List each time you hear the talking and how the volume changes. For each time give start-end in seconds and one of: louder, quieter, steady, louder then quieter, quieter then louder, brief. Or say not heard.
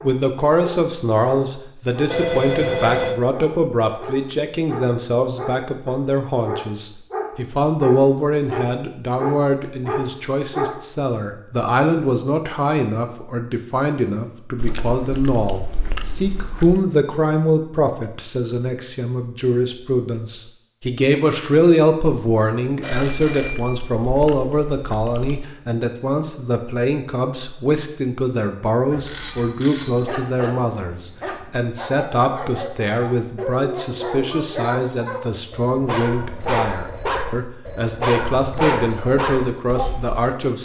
0.0-40.5 steady.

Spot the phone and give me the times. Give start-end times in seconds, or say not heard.
2.1-3.1, 22.8-23.8, 29.1-30.1.